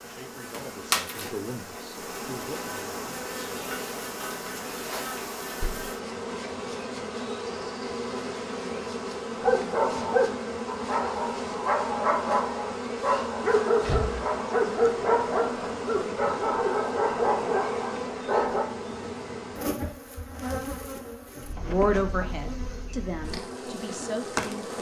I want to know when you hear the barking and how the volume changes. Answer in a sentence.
You can hear the barking from 9.4 to 18.6 s, at a steady volume.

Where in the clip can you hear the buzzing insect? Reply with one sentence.
The buzzing insect can be heard from 0.0 to 24.7 s.